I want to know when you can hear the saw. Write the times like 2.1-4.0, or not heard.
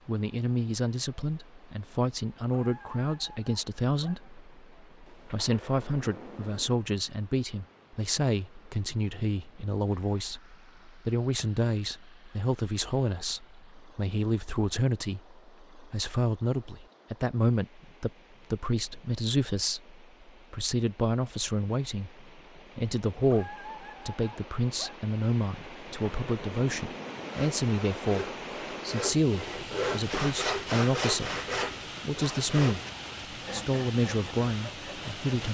27.2-35.4.